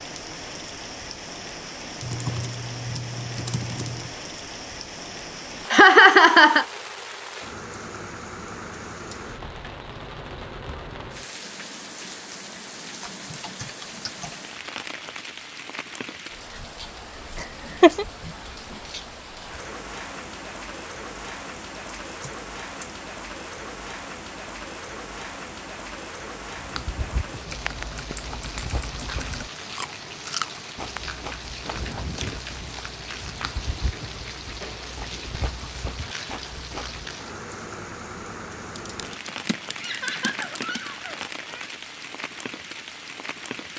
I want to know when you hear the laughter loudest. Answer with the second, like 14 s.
6 s.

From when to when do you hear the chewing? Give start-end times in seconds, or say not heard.
26.6-37.0.